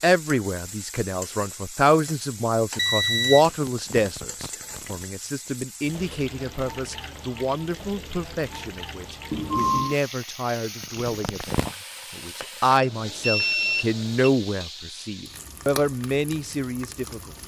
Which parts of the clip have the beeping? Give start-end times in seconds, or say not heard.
2.8-3.5, 9.3-9.9, 12.8-14.3.